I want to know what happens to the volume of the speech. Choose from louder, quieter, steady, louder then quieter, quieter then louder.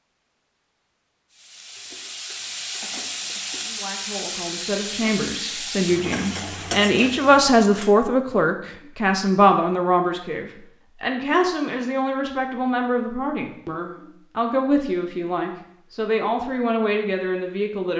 louder then quieter.